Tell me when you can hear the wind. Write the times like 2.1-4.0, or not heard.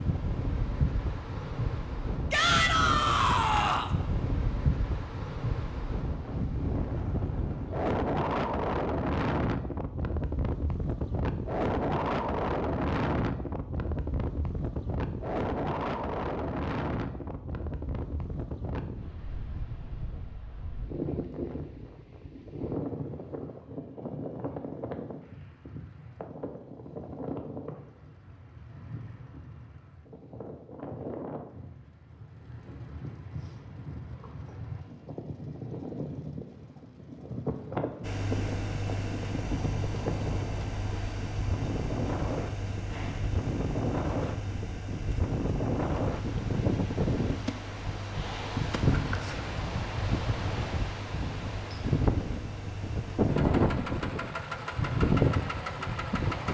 0.0-56.4.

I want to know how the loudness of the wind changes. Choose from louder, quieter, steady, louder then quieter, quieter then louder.
quieter then louder.